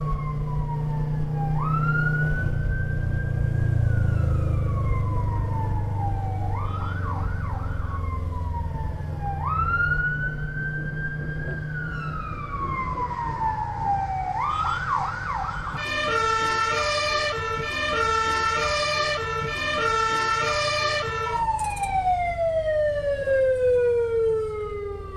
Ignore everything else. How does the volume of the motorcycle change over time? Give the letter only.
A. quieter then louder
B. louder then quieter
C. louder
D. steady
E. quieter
E.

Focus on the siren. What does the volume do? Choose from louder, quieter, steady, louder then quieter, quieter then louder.
louder.